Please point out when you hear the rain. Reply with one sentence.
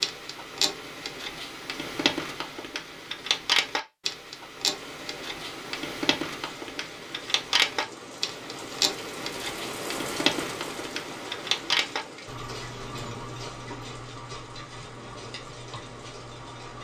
The rain can be heard from 4.7 to 16.7 s.